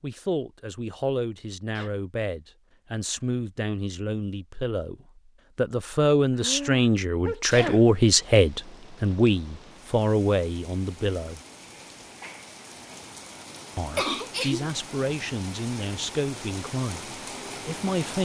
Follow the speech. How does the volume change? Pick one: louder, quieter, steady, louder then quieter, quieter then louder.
louder then quieter.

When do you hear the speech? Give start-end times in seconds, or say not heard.
0.0-11.4, 13.8-18.2.